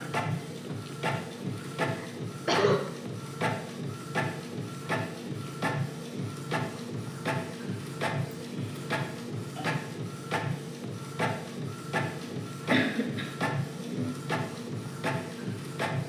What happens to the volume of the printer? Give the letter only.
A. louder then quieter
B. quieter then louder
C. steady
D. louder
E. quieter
C.